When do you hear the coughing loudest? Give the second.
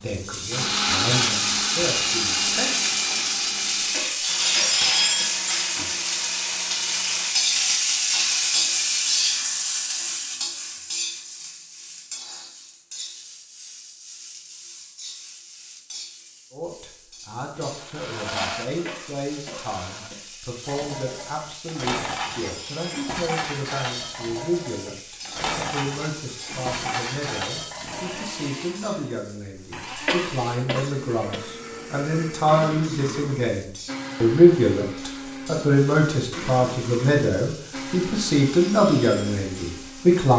30 s.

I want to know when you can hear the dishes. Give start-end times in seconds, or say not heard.
20.6-28.5.